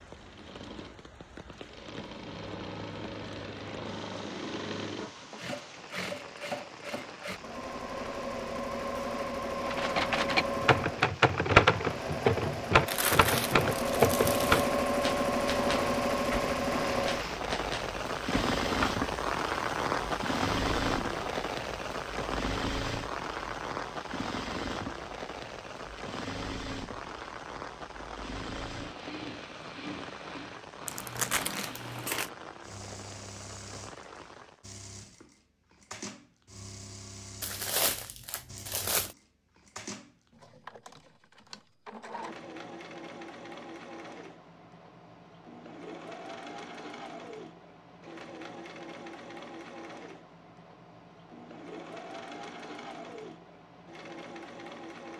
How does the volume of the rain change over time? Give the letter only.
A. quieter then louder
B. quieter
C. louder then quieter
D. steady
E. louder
C.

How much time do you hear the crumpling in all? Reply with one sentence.
You can hear the crumpling for 5 seconds altogether.